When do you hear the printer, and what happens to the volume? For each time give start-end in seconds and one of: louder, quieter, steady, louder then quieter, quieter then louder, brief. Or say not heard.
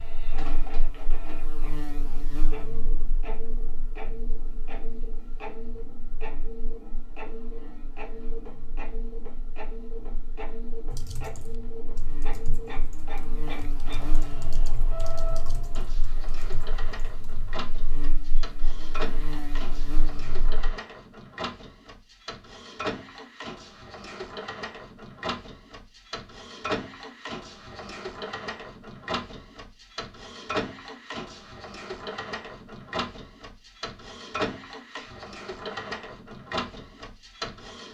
0.0-37.8 louder.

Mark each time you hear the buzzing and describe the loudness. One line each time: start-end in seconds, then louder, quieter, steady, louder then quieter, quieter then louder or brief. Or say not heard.
0.0-20.8 quieter then louder.